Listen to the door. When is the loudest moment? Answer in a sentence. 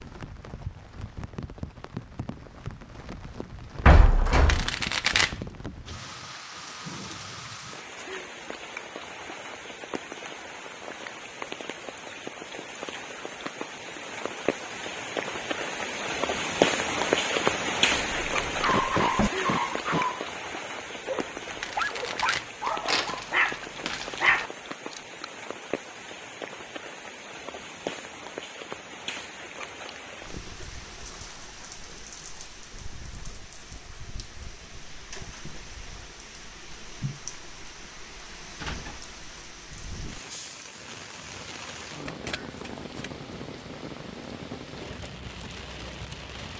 The loudest moment of the door is at 4 seconds.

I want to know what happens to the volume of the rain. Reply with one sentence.
The loudness of the rain goes up, then down.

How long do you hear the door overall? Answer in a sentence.
The door can be heard for 3 seconds in total.